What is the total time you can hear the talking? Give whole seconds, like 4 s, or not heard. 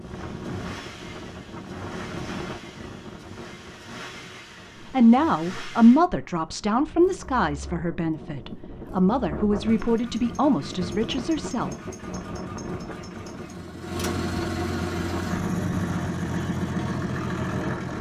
7 s.